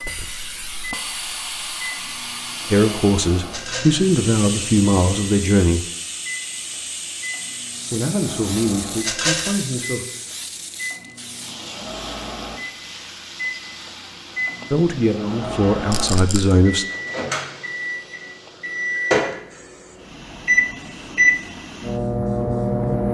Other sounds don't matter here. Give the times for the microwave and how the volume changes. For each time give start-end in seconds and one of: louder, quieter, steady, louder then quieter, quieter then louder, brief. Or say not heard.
0.0-23.0 louder.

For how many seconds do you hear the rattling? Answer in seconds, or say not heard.
2 s.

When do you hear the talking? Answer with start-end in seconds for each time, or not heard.
2.7-5.8, 7.9-10.0, 14.7-16.9.